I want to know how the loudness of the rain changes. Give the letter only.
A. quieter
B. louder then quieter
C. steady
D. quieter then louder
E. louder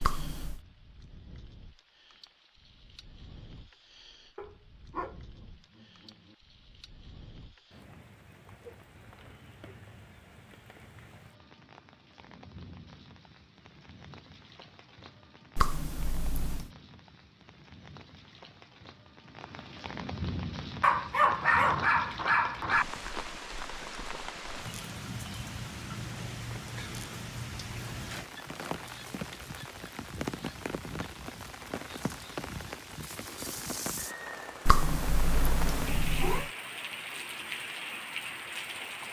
E.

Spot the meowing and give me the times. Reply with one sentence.
You can hear the meowing from 0.0 to 0.6 s, from 15.6 to 16.7 s and from 34.6 to 36.5 s.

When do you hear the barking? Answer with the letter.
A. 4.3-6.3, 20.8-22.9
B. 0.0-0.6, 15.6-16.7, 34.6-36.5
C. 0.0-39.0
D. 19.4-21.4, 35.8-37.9
A.